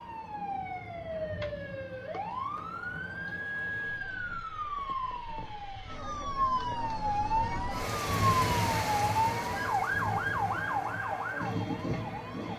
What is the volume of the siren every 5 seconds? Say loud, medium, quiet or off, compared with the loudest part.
medium, loud, loud.